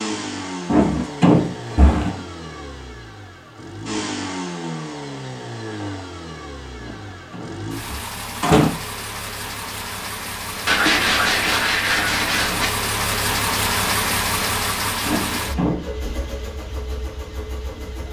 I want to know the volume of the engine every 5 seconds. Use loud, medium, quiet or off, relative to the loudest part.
medium, medium, loud, medium.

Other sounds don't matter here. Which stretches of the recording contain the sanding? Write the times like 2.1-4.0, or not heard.
10.7-12.7.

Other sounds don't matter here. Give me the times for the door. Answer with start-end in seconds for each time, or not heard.
0.7-2.2, 6.8-8.7, 15.1-15.8.